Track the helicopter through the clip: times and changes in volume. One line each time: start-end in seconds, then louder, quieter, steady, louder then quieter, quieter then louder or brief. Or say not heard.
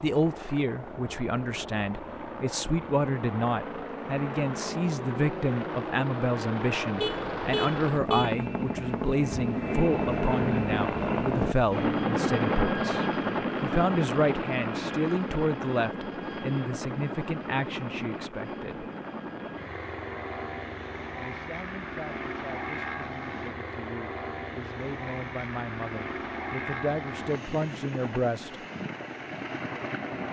0.0-30.2 louder then quieter.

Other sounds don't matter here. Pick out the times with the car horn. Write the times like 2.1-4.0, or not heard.
7.0-8.4.